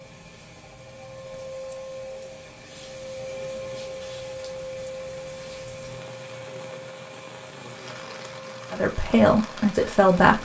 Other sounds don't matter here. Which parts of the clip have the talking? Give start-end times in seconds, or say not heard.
8.7-10.4.